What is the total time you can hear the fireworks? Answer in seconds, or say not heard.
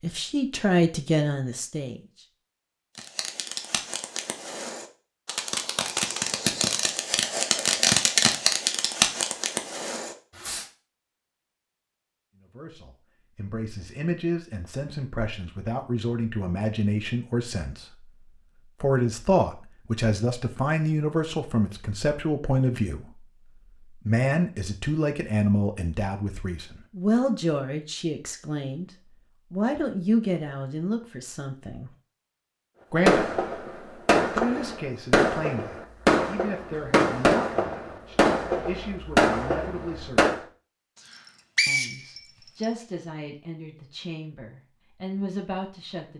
15 s.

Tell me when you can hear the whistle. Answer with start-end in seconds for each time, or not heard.
41.0-42.7.